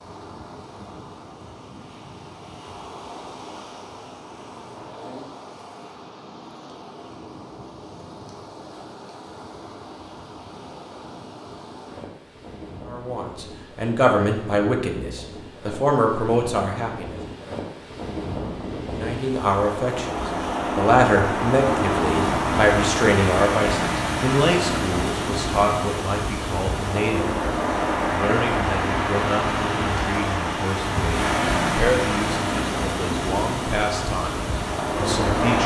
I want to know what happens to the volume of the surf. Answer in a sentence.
The loudness of the surf goes up.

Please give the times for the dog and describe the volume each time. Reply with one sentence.
The dog can't be heard in this clip.